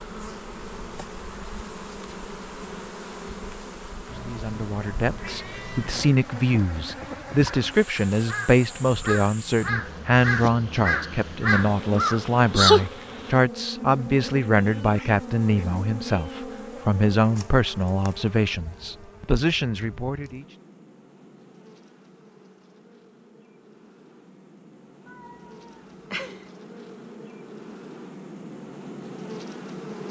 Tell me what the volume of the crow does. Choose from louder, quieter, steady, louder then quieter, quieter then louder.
louder.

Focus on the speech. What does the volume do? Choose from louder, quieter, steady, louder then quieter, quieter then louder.
steady.